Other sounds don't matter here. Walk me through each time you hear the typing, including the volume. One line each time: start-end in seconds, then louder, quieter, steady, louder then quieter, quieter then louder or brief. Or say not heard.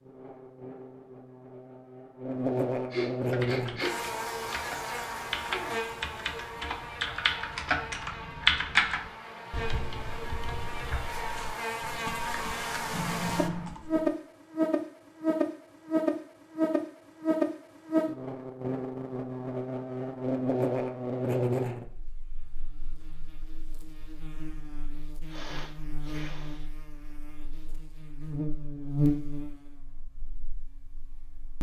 3.2-14.1 louder then quieter.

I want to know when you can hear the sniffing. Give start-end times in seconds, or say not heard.
2.9-4.0, 12.9-13.7, 25.2-26.7.